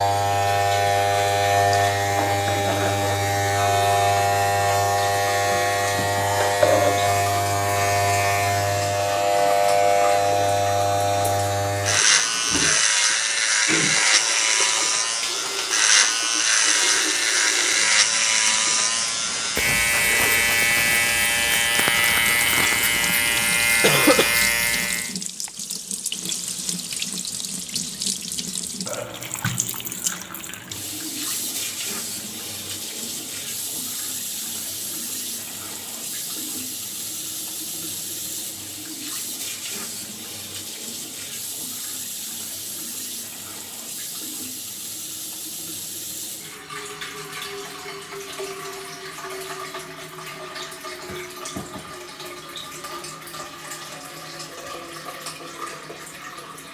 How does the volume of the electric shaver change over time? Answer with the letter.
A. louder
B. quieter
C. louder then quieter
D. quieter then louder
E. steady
E.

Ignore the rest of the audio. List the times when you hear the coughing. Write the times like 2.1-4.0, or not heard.
23.8-24.4.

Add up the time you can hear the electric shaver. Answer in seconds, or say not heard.
25 s.